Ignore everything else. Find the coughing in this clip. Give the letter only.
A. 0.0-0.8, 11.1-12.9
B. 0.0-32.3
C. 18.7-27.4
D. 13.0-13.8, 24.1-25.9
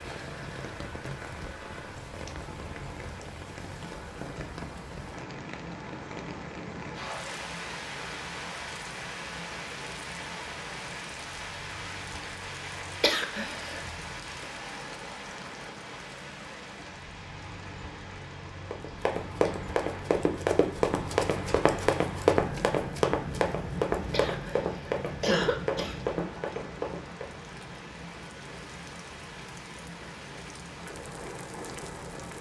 D.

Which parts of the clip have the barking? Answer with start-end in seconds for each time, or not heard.
not heard.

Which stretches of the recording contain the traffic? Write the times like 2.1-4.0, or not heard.
0.0-32.3.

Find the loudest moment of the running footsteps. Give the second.
22 s.